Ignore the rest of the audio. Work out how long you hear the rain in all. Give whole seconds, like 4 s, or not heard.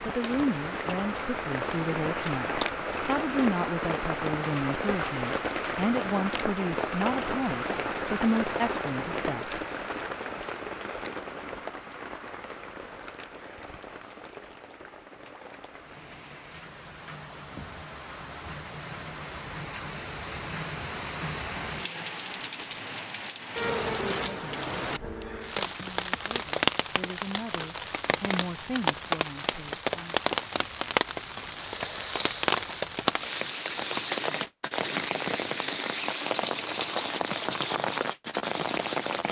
39 s.